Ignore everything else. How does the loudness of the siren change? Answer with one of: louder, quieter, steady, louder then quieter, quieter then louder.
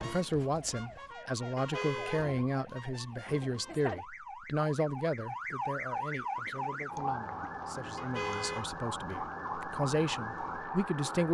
louder.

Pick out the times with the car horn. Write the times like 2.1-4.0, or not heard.
1.6-2.3, 8.0-9.2.